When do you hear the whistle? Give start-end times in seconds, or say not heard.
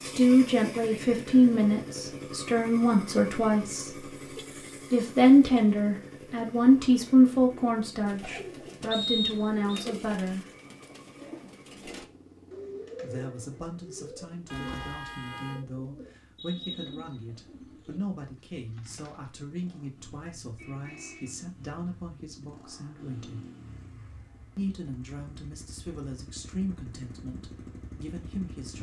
8.9-9.8.